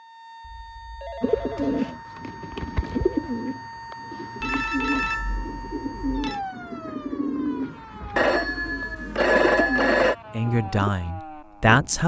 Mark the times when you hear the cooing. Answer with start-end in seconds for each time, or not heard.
1.2-10.9.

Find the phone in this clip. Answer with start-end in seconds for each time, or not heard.
0.4-1.9, 4.4-6.4, 8.2-10.2.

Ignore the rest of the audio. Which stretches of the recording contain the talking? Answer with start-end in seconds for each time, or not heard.
10.3-12.0.